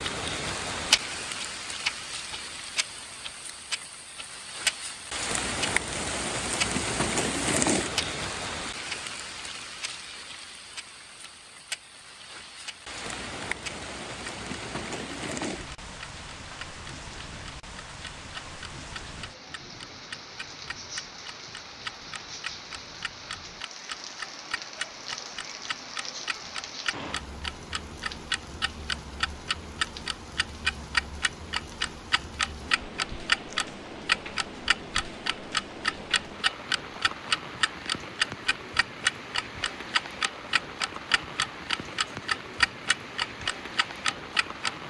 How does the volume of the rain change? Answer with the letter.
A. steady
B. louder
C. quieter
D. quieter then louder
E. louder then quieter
C.